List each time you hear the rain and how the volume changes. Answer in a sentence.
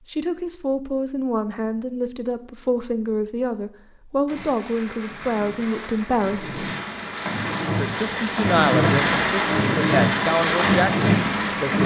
The rain can be heard from 4.2 to 11.8 s, getting louder.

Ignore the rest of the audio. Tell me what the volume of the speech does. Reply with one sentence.
The loudness of the speech stays about the same.